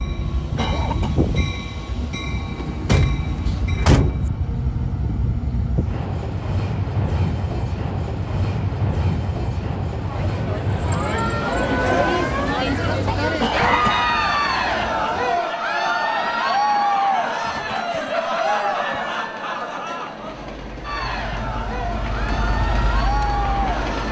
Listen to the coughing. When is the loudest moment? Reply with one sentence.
The volume of the coughing peaks at 14 seconds.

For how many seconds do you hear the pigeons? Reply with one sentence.
You can't hear the pigeons here.